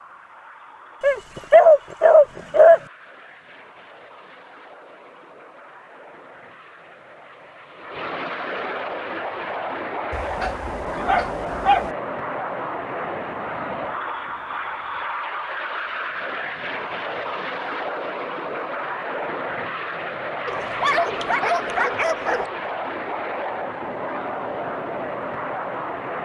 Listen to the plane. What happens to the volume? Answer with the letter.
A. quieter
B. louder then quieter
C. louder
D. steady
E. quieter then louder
C.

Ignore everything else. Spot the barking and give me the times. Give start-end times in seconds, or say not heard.
1.0-2.8, 10.1-11.9, 20.4-22.5.